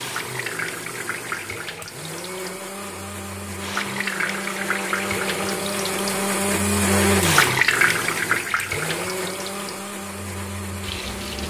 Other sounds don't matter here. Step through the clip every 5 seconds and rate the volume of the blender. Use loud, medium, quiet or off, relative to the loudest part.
medium, loud, medium.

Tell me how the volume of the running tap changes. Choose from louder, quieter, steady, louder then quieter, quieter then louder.
louder then quieter.